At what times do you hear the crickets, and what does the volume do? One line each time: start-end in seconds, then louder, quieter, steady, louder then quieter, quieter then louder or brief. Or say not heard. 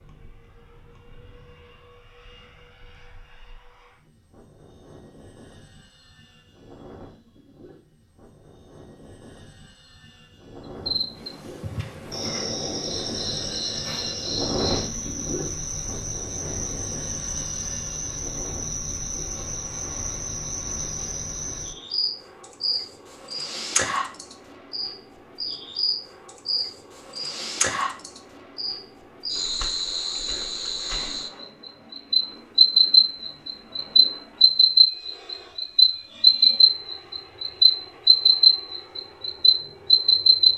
10.8-40.5 louder.